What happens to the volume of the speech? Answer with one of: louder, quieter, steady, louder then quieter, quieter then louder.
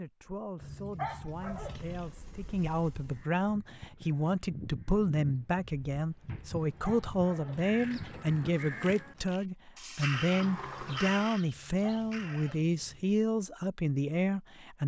louder.